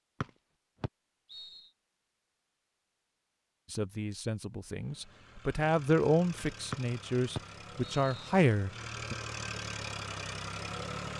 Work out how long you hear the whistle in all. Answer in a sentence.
The whistle can be heard for 3 seconds in total.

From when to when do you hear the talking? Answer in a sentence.
You can hear the talking from 3.7 to 9.2 s.